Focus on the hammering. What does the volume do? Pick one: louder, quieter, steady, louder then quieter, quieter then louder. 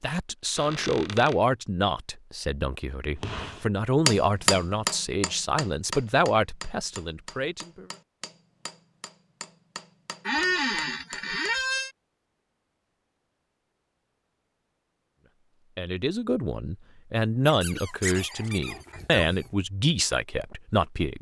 quieter.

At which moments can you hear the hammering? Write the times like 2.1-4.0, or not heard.
3.2-11.8.